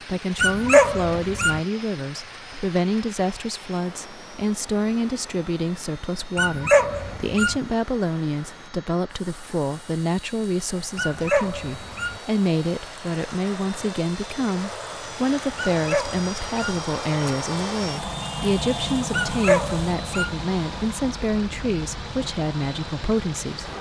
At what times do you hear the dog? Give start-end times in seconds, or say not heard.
0.3-1.6, 6.3-7.6, 10.9-12.2, 15.6-16.8, 19.1-20.4.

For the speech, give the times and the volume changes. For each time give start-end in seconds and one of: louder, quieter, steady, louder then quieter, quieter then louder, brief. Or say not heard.
0.1-23.7 steady.